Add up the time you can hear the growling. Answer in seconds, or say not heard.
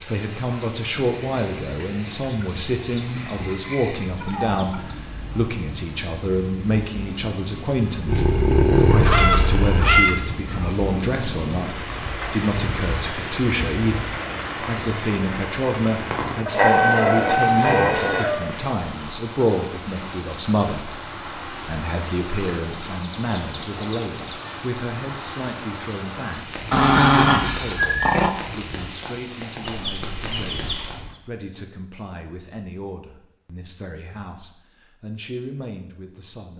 5 s.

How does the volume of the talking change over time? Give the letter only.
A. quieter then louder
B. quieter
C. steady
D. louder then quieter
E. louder
B.